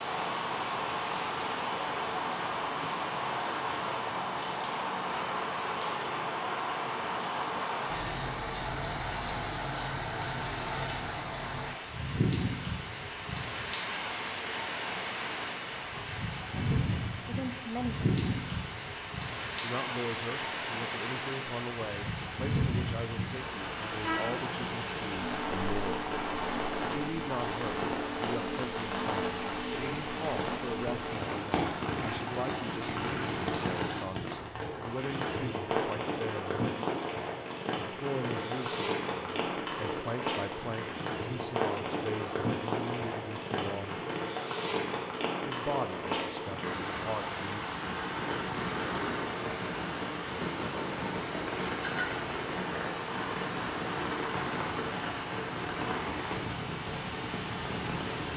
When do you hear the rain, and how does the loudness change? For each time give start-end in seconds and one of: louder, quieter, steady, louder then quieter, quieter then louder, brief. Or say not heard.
0.0-58.3 steady.